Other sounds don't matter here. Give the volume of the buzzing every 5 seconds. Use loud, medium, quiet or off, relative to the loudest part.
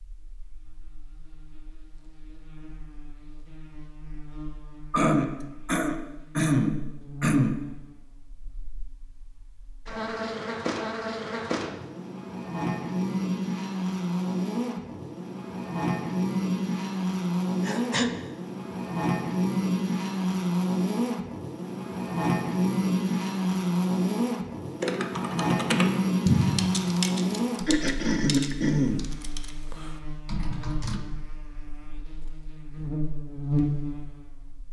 quiet, quiet, loud, loud, loud, loud, medium.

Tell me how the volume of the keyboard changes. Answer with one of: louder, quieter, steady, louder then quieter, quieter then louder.
quieter then louder.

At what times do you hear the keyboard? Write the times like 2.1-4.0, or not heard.
24.8-31.0.